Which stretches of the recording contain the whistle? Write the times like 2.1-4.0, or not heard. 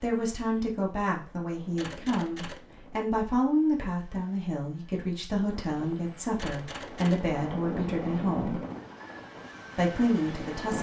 not heard.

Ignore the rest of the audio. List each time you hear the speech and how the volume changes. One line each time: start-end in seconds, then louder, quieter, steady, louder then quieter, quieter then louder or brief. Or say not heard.
0.0-8.6 steady
9.8-10.7 brief.